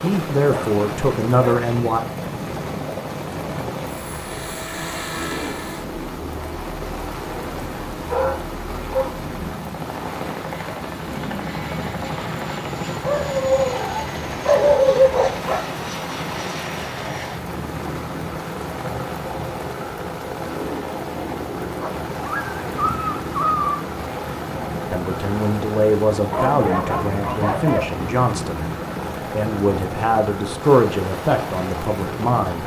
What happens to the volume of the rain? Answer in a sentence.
The volume of the rain stays about the same.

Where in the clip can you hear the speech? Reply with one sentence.
You can hear the speech from 0.0 to 2.0 s, from 24.9 to 28.7 s and from 29.3 to 32.6 s.